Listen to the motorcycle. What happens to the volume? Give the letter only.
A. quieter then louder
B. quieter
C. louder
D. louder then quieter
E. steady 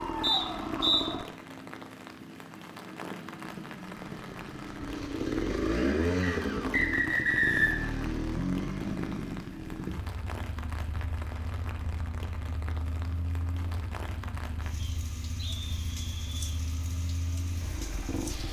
D.